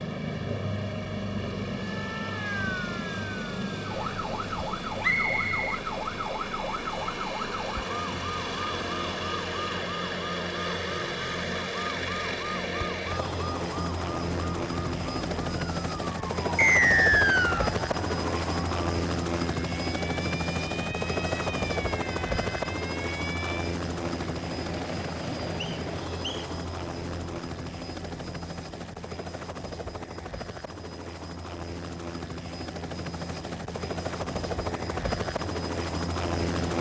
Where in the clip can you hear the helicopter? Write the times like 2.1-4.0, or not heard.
0.0-36.7.